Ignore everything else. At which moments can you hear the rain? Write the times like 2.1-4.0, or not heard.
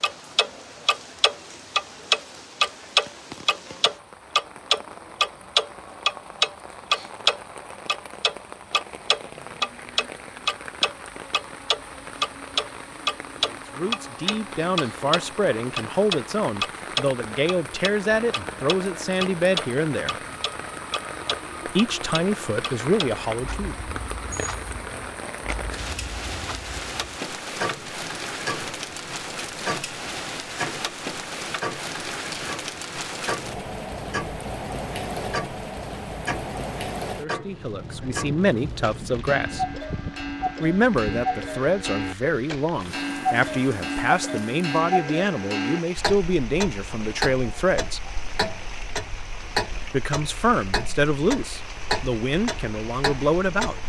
0.0-53.8.